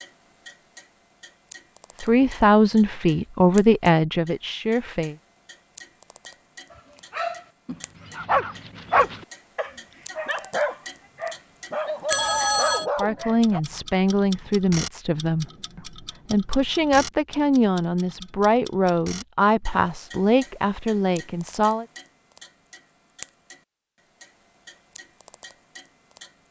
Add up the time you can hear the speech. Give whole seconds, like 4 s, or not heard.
12 s.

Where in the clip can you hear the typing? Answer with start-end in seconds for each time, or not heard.
not heard.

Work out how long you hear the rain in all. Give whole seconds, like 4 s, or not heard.
not heard.